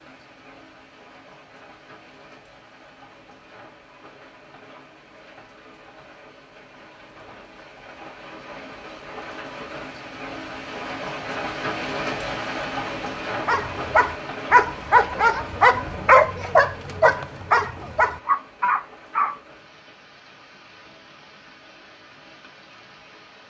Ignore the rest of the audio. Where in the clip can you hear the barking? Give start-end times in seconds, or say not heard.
13.4-19.4.